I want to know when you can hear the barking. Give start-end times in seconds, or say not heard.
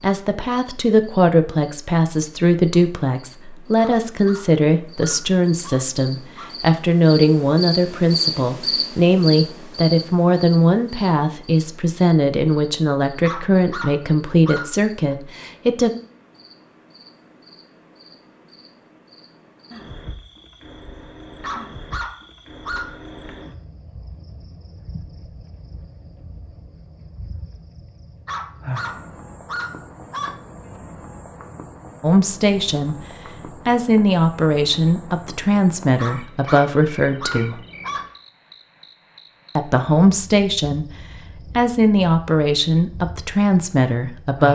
3.8-6.5, 13.2-15.2, 21.4-23.0, 28.2-30.4, 36.0-38.1.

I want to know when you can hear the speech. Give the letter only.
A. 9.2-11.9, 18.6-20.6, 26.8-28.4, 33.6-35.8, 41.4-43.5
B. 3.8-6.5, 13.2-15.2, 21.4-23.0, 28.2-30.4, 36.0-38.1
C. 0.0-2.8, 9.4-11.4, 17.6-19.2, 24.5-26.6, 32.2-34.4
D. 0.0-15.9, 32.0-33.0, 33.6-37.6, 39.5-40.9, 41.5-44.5
D.